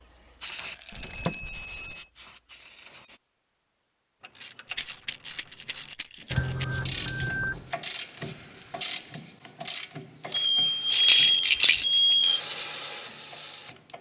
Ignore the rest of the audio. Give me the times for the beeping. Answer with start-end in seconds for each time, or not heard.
0.9-2.0, 6.3-7.7, 10.3-12.4.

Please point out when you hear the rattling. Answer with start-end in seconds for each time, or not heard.
0.6-1.4, 4.7-6.7, 10.9-12.0.